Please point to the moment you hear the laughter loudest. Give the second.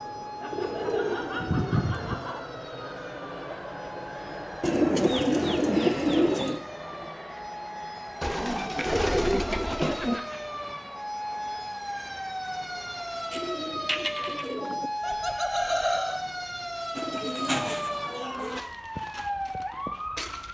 16 s.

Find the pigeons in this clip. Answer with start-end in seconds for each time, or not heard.
0.5-2.1, 4.6-6.6, 8.2-10.2, 13.3-14.9, 16.9-18.6.